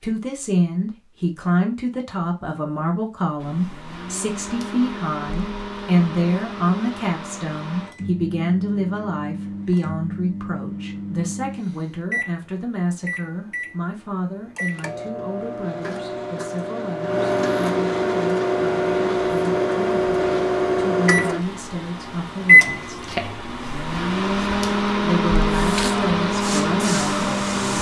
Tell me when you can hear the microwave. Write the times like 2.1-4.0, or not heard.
3.4-27.7.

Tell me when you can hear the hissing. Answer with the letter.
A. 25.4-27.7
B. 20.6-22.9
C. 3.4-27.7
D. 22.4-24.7
A.